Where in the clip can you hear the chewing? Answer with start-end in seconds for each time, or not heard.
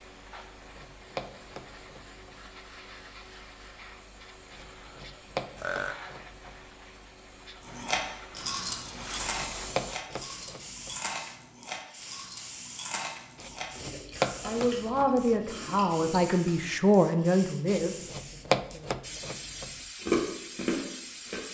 7.7-16.7, 20.0-21.4.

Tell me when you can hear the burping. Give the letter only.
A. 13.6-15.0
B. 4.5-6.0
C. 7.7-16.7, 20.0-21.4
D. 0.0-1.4
B.